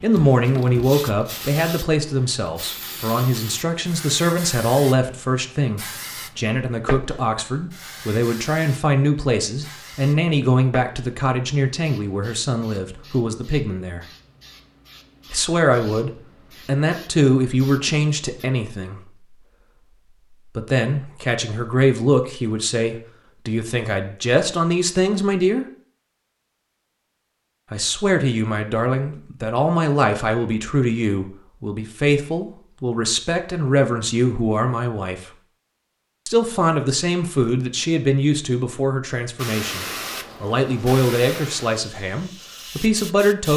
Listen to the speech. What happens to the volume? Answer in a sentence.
The loudness of the speech stays about the same.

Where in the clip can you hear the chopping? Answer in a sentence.
The chopping can't be heard in this clip.